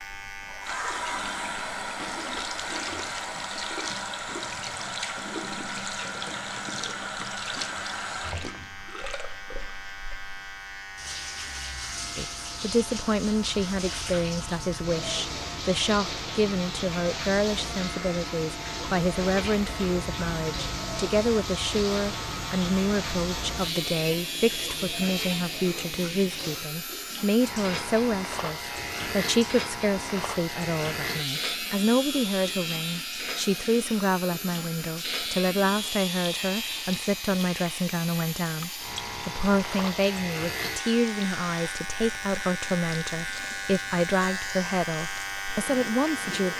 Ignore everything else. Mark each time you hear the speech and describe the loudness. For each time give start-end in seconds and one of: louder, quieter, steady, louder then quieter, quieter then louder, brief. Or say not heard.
12.2-46.5 steady.